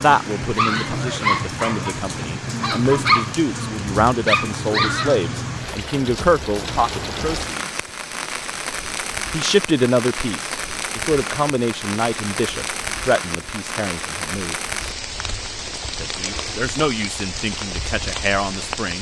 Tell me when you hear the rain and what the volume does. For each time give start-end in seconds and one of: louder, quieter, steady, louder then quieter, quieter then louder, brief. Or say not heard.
0.0-18.9 steady.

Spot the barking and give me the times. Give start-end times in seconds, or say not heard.
0.0-5.2.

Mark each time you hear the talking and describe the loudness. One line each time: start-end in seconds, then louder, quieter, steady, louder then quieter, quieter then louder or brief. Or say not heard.
0.0-7.8 louder
9.3-14.6 quieter
16.0-18.9 brief.